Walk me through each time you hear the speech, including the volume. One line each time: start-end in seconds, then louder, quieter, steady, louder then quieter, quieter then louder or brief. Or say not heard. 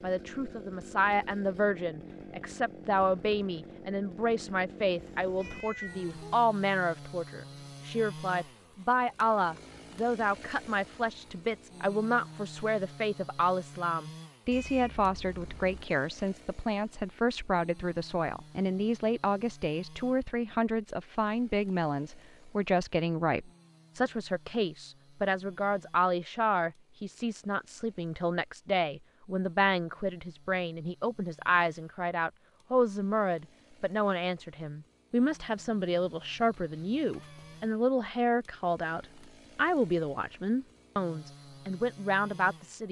0.0-42.8 steady.